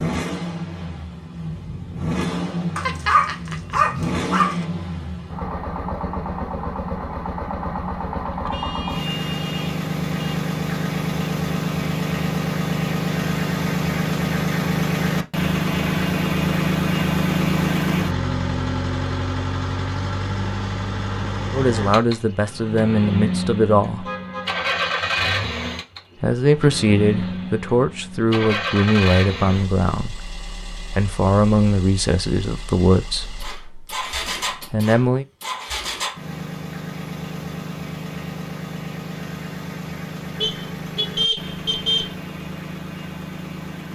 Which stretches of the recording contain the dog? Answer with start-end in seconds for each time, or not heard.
2.8-4.7.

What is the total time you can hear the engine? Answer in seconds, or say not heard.
44 s.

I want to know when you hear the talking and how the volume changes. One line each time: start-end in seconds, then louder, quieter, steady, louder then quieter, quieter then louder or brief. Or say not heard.
21.5-24.1 brief
26.2-35.2 quieter.